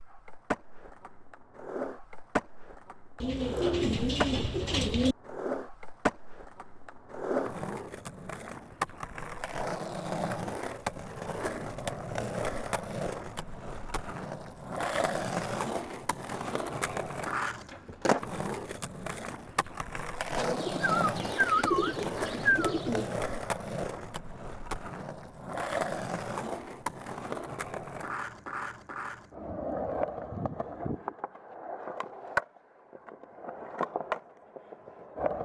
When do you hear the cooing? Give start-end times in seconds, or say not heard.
3.2-5.2, 20.4-23.1.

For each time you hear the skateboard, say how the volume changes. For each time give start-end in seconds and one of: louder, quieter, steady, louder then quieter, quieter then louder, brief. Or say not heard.
0.0-35.4 steady.